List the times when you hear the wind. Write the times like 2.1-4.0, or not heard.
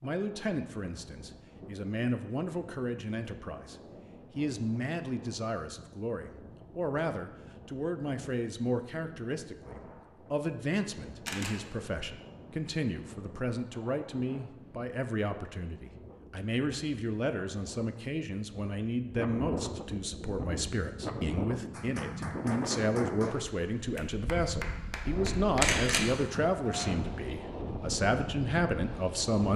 0.0-29.5.